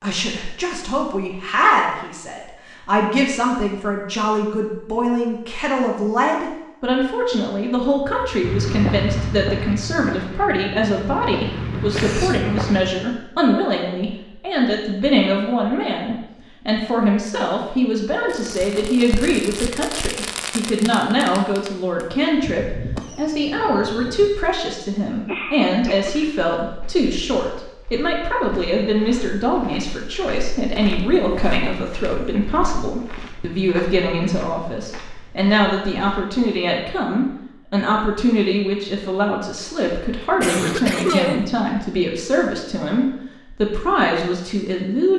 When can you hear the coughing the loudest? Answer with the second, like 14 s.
41 s.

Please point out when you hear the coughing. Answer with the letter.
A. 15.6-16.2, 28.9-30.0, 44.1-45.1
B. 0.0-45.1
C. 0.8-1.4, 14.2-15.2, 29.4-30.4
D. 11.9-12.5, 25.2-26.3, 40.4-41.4
D.